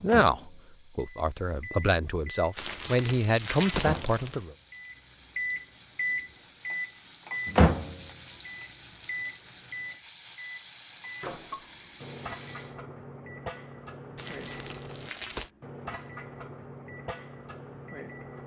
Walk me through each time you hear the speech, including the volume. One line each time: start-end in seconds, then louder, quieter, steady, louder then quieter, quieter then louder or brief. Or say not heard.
0.0-4.5 louder.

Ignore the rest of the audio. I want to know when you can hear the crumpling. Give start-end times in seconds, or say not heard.
2.5-4.5, 14.2-15.5.